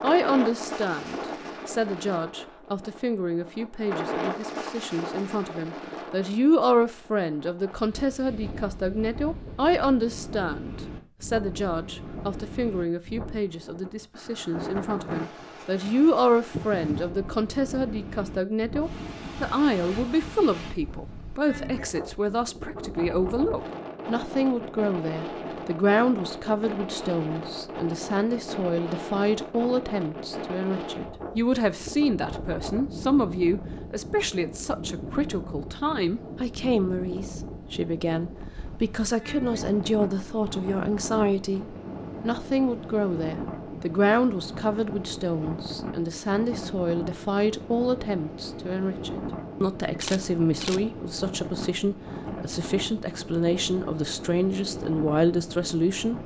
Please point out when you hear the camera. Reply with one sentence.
You can hear the camera from 49.9 to 50.9 s.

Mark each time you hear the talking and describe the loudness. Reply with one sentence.
The talking can be heard from 0.0 to 56.2 s, at a steady volume.